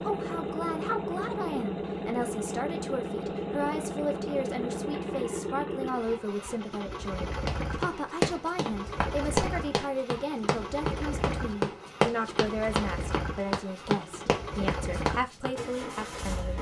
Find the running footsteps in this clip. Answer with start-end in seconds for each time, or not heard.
7.5-15.6.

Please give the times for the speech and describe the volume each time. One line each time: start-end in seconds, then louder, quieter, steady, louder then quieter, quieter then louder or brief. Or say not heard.
0.0-16.5 steady.